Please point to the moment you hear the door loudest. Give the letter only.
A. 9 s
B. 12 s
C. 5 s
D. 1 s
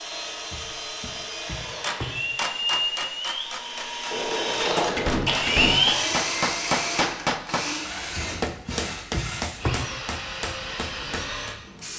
C.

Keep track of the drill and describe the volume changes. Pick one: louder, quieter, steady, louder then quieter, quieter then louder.
louder then quieter.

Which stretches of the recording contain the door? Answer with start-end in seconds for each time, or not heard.
0.5-2.1, 4.1-5.8, 8.2-9.8.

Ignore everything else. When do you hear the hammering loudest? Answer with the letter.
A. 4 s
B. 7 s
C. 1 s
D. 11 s
B.